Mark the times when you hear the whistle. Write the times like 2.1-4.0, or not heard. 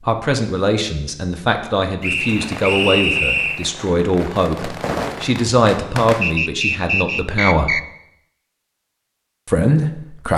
2.0-3.6, 6.2-7.8.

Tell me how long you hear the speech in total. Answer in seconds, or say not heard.
9 s.